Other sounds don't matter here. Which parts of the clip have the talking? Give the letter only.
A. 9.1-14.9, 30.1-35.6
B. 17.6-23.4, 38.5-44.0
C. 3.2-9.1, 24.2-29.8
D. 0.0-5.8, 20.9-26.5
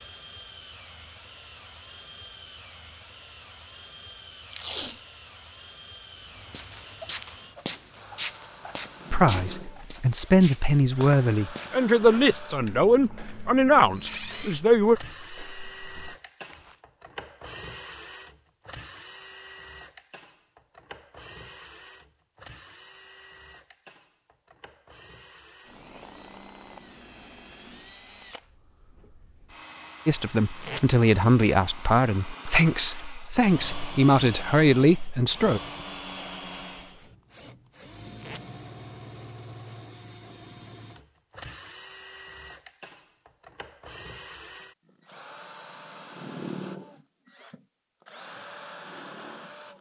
A.